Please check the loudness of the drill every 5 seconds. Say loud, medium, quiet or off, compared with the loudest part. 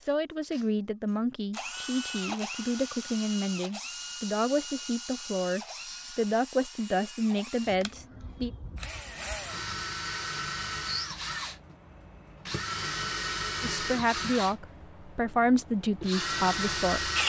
medium, medium, loud, loud.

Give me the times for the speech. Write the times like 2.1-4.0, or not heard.
0.1-8.5, 13.6-17.1.